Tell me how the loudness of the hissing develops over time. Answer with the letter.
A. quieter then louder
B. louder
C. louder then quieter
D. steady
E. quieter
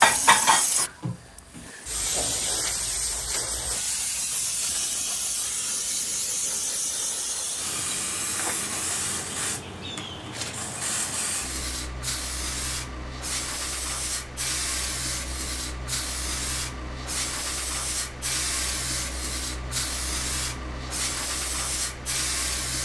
D.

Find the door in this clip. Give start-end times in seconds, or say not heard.
not heard.